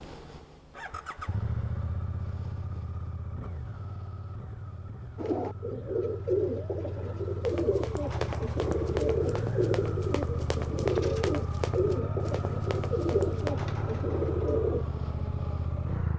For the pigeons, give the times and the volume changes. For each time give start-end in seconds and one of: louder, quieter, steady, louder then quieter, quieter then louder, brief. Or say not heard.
5.2-14.8 steady.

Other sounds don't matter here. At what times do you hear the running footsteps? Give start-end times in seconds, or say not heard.
7.5-13.6.